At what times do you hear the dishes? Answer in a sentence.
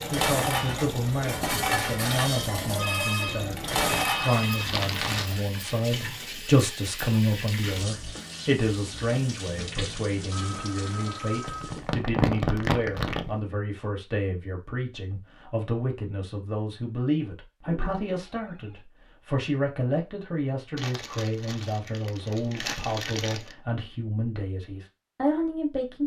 The dishes can be heard from 0.0 to 4.5 s.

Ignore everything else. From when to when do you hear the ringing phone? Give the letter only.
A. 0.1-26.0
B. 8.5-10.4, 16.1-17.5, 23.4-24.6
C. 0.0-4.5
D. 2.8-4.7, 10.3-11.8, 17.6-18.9
D.